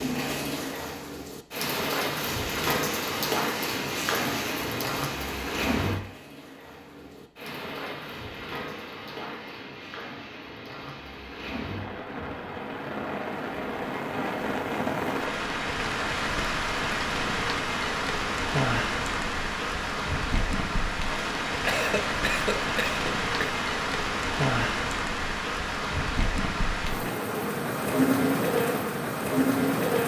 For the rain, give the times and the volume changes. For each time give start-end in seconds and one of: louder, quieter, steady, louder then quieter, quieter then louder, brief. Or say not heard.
0.0-30.0 quieter then louder.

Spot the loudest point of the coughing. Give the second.
22 s.